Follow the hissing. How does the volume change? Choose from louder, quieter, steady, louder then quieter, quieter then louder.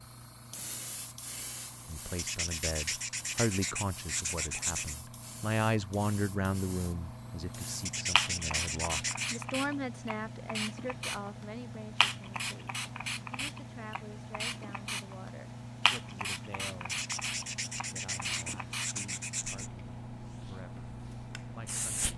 louder then quieter.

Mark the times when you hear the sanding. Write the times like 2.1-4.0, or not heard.
2.1-5.0, 7.8-9.4, 16.9-19.7.